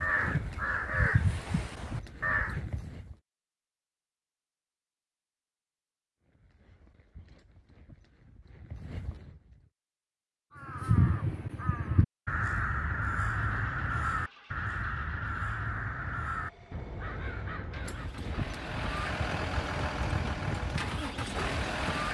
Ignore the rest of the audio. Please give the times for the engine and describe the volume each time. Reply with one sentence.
The engine can be heard from 13.2 to 22.0 s, getting louder.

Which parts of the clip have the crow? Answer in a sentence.
The crow can be heard from 0.0 to 2.6 s and from 10.6 to 18.2 s.